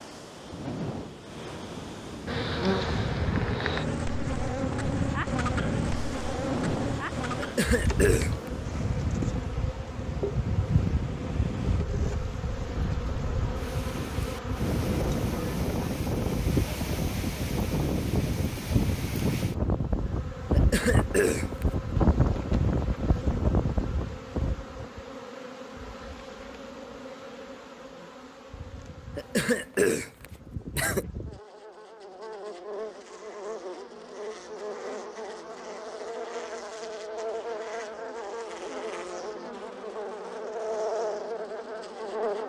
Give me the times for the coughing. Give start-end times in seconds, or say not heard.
7.3-8.3, 20.5-21.6, 29.1-31.1.